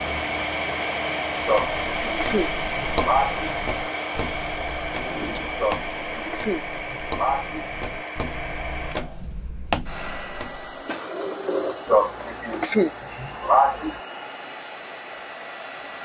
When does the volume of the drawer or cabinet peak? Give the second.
12 s.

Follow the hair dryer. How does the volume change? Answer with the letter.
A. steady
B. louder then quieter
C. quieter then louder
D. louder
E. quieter
E.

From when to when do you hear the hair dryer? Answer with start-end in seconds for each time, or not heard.
0.0-16.0.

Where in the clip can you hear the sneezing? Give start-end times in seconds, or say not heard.
1.4-3.5, 5.5-7.7, 11.8-14.0.